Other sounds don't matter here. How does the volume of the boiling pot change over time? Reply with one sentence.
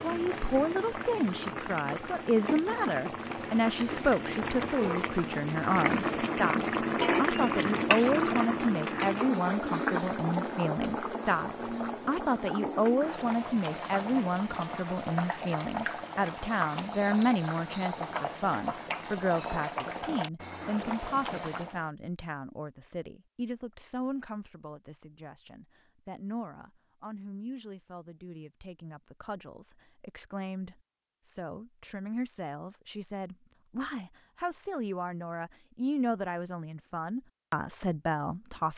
The loudness of the boiling pot goes up, then down.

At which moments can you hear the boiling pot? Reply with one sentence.
You can hear the boiling pot from 0.0 to 21.9 s.